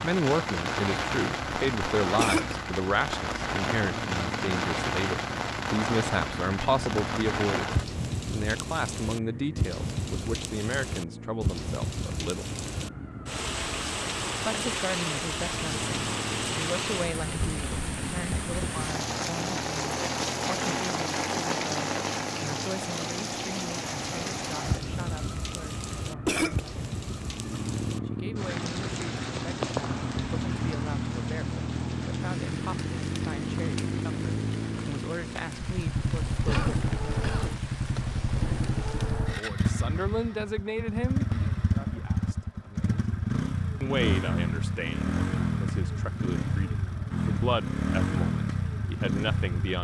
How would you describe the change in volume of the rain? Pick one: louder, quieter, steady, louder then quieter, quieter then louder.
quieter.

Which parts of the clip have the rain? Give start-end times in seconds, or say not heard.
0.0-39.4.